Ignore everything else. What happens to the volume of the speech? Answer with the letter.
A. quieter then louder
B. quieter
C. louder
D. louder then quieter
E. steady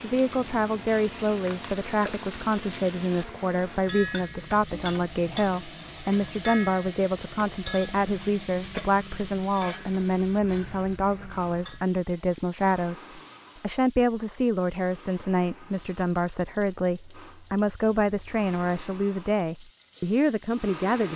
E.